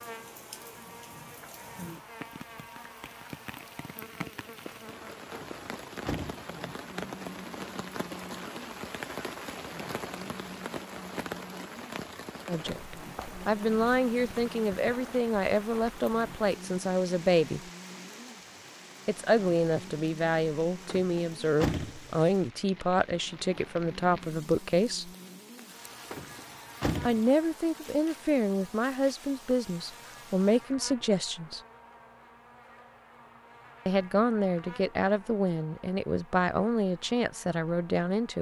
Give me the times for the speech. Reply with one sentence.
The speech can be heard from 12.4 to 17.6 s, from 19.1 to 25.1 s, from 27.0 to 31.6 s and from 33.9 to 38.3 s.